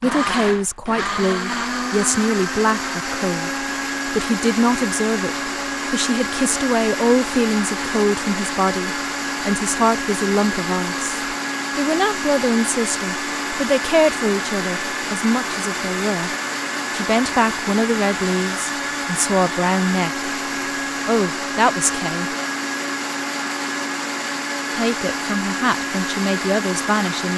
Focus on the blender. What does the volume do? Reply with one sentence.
The loudness of the blender stays about the same.